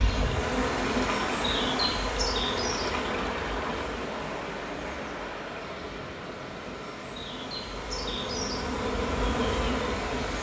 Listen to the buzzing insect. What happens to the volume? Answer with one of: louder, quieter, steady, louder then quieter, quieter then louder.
quieter then louder.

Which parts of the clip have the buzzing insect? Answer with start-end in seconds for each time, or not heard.
0.0-10.3.